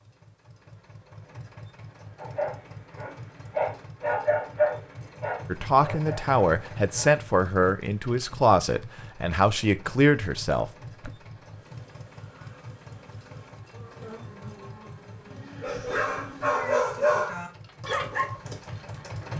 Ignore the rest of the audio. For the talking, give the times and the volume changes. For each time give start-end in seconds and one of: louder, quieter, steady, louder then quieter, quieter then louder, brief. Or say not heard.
5.5-11.1 steady.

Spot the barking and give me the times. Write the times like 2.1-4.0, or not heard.
2.1-7.2, 15.6-19.3.